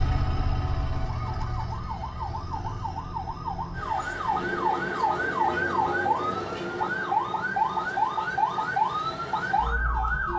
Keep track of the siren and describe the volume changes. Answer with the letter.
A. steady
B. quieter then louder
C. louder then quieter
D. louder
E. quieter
D.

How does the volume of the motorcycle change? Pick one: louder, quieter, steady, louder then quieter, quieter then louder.
quieter.